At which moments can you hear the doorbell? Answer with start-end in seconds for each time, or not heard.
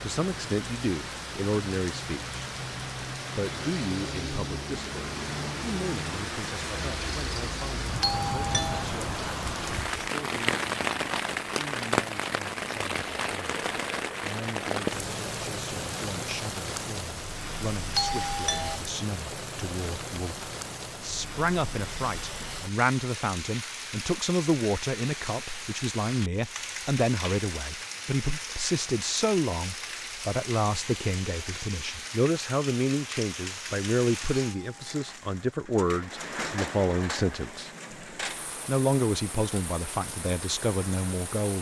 8.0-8.8, 17.9-18.8, 34.4-35.1.